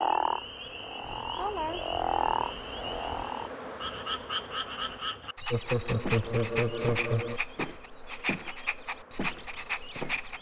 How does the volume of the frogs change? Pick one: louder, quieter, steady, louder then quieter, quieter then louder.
steady.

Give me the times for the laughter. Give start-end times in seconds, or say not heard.
1.1-1.9, 5.5-7.4.